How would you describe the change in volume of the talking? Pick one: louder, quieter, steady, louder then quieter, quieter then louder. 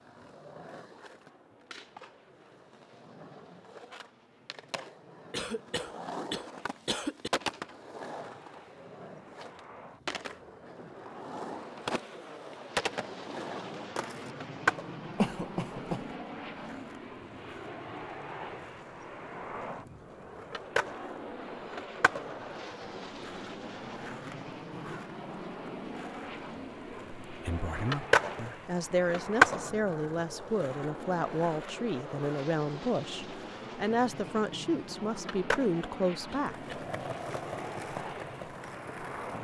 steady.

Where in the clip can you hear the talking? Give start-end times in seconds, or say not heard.
27.2-36.6.